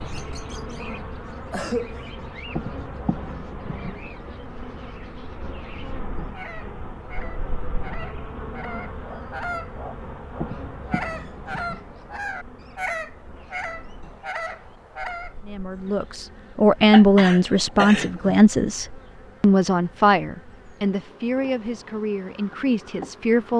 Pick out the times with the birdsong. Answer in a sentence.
You can hear the birdsong from 0.0 to 15.3 s.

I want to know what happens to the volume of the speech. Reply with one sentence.
The volume of the speech goes down.